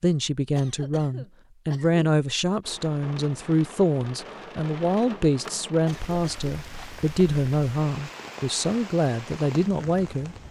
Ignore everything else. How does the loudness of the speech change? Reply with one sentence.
The volume of the speech stays about the same.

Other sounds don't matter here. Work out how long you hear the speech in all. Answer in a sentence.
The speech can be heard for 10 seconds in total.